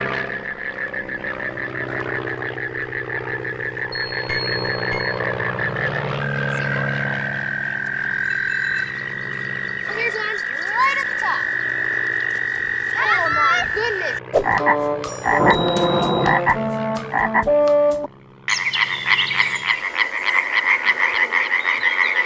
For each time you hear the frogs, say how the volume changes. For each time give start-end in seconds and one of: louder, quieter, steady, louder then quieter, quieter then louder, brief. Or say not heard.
0.1-22.2 louder.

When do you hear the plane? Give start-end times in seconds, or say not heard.
0.0-22.2.